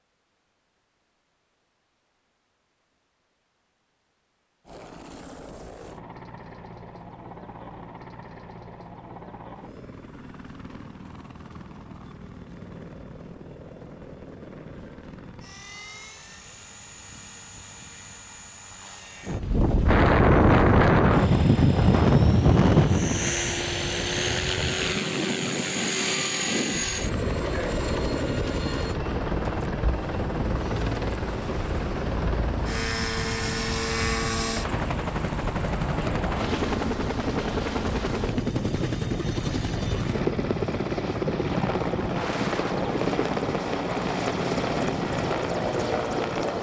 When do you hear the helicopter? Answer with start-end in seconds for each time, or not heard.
4.7-46.5.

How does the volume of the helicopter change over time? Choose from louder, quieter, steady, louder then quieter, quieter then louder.
louder.